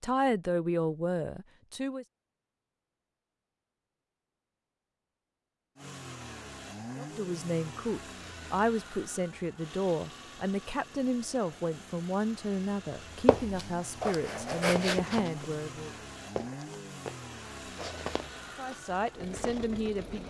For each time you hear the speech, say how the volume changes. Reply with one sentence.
The speech can be heard briefly from 0.0 to 2.0 s; from 7.0 to 15.9 s, at a steady volume; and briefly from 18.6 to 20.2 s.